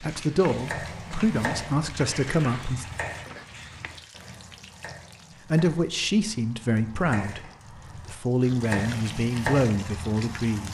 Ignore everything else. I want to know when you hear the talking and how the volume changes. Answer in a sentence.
You can hear the talking briefly from 0.0 to 2.9 s; and from 5.5 to 10.6 s, at a steady volume.